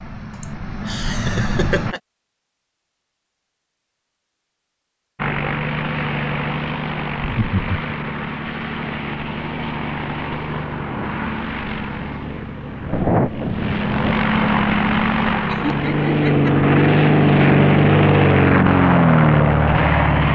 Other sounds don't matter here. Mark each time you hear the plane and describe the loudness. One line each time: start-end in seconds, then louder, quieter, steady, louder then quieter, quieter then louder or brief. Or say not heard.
0.0-1.9 brief
5.2-20.2 louder.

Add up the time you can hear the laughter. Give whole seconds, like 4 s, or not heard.
3 s.